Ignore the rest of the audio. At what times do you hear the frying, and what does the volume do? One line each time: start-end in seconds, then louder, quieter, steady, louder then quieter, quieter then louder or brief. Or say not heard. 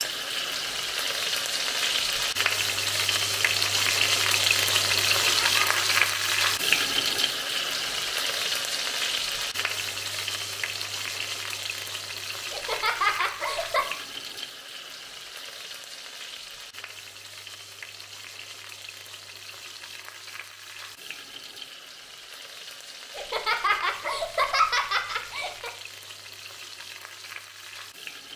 0.0-28.3 quieter.